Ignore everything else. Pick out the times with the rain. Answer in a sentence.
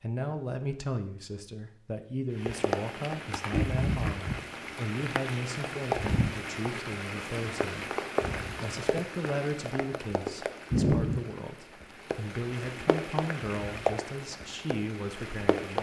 The rain can be heard from 2.4 to 15.7 s.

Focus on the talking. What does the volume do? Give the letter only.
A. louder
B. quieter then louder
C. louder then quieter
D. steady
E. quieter
D.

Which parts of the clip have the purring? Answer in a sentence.
The purring can't be heard in this clip.